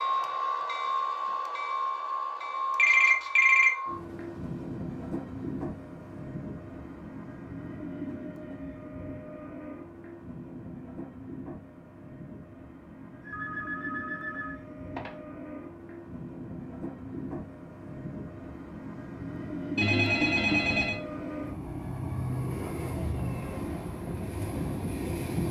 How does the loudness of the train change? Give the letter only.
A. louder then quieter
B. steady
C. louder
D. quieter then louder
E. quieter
D.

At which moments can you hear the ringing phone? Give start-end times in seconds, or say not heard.
2.8-3.8, 13.2-15.1, 19.8-21.0.